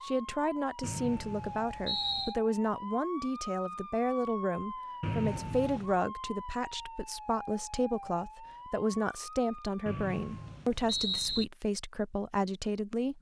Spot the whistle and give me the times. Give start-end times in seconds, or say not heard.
0.8-2.4, 5.0-6.0, 9.8-11.4.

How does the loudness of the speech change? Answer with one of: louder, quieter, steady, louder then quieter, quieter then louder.
steady.